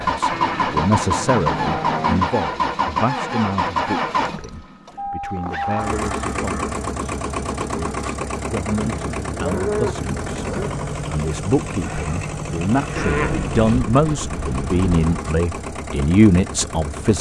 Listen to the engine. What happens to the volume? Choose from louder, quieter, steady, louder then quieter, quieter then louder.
quieter.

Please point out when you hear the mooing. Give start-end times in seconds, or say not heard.
0.3-2.4, 5.7-6.8, 8.8-10.8, 12.9-15.2.